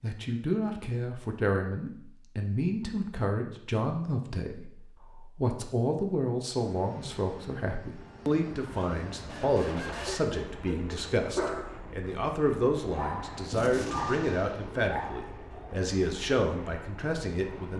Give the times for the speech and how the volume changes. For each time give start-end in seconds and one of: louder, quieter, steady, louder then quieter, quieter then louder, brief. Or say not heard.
0.0-17.7 steady.